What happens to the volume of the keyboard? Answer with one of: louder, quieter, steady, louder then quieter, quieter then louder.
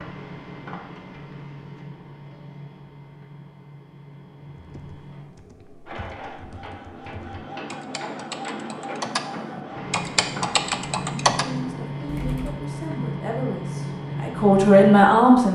louder.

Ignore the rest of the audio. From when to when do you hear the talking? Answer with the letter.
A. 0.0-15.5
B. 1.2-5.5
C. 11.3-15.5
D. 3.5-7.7
C.